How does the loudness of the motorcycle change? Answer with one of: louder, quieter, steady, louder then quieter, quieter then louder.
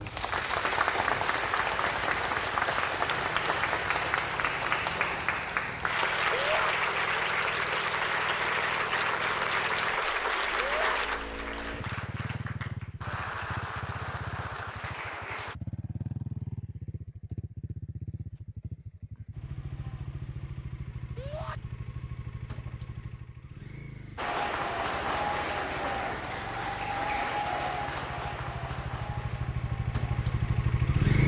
louder.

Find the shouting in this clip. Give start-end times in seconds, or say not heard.
6.3-6.8, 10.6-11.0, 21.1-21.6.